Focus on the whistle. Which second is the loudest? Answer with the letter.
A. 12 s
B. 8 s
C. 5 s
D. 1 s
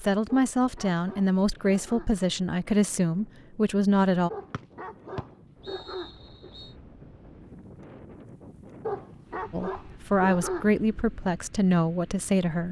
C.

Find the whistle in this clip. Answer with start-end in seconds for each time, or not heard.
4.5-6.8.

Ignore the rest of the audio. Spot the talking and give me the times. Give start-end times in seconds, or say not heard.
0.0-4.3, 9.5-12.6.